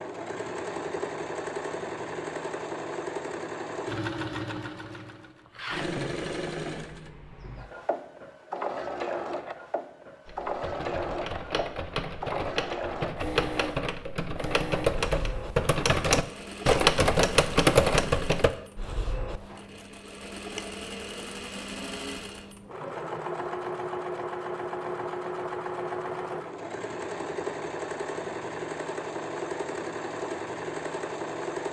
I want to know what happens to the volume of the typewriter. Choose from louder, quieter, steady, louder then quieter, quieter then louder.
louder.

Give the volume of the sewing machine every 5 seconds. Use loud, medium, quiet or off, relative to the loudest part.
loud, loud, loud, medium, loud, loud, loud.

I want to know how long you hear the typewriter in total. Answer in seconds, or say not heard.
8 s.